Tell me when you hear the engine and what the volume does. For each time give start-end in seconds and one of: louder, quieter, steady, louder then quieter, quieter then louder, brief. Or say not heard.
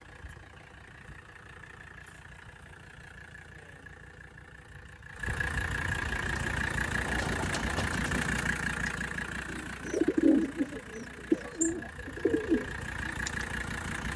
0.0-14.1 louder then quieter.